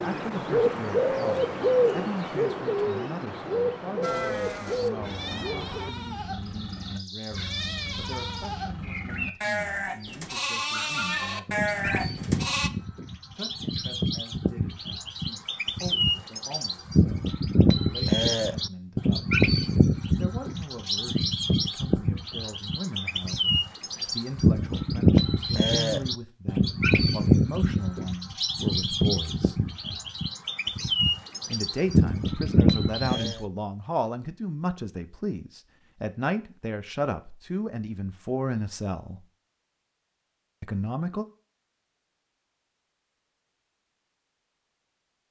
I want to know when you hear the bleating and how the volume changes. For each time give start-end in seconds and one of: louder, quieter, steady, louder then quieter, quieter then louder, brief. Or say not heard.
4.0-12.7 louder.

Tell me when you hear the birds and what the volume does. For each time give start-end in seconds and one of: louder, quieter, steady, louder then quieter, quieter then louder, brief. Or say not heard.
0.0-33.4 quieter then louder.